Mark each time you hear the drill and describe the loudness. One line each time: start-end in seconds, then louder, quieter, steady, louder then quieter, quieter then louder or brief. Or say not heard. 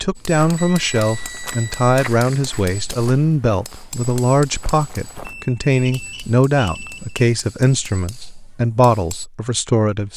not heard.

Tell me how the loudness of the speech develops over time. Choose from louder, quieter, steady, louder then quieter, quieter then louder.
steady.